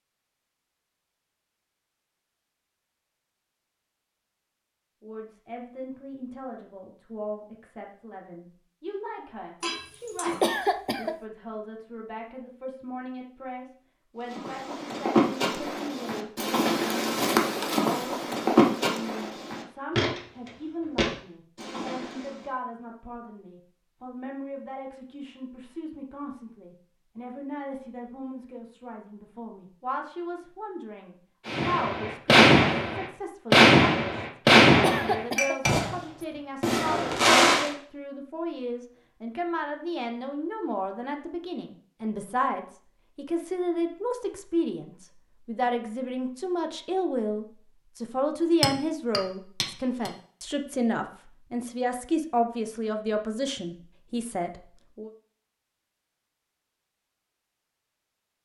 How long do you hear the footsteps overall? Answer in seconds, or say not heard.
8 s.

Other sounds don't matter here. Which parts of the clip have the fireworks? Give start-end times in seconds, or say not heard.
31.4-37.7.